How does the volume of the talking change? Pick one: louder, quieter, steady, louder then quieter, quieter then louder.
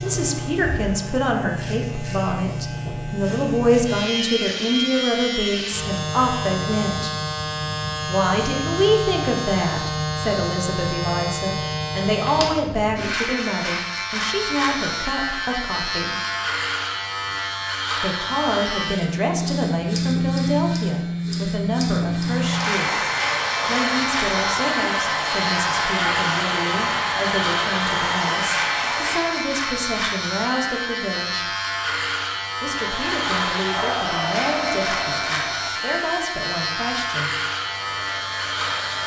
quieter.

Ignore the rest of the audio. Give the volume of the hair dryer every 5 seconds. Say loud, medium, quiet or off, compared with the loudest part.
off, off, off, off, loud, loud, loud, medium.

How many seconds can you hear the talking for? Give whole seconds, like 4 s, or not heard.
33 s.